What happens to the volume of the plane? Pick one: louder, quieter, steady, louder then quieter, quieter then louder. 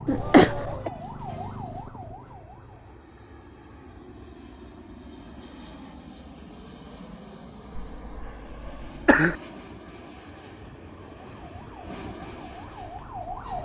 louder.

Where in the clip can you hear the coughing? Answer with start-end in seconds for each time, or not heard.
0.1-0.9, 7.8-9.3.